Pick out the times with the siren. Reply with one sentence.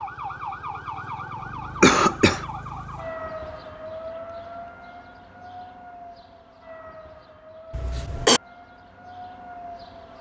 You can hear the siren from 0.0 to 10.1 s.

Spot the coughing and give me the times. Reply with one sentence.
The coughing can be heard from 1.8 to 2.5 s and from 7.7 to 8.4 s.